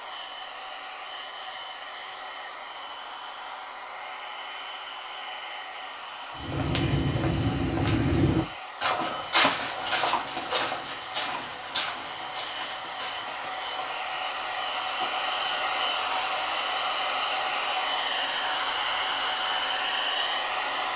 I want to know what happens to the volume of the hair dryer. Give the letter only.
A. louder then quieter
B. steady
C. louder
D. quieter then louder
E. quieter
C.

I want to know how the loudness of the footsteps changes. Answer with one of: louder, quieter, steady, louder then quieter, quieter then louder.
quieter.